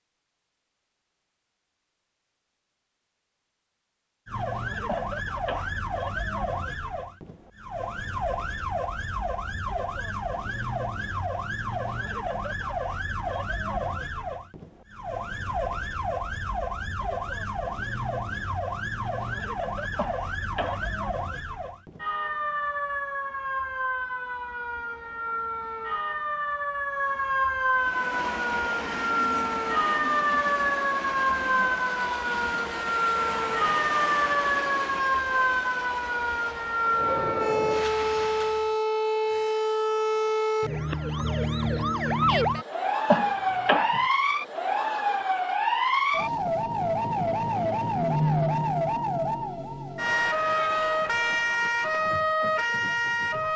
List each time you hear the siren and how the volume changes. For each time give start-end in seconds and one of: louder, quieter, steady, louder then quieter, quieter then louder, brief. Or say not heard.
4.2-53.5 louder.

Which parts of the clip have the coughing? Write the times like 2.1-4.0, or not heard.
4.8-5.8, 19.9-20.9, 43.0-44.0.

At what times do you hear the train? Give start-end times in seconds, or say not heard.
27.7-38.8.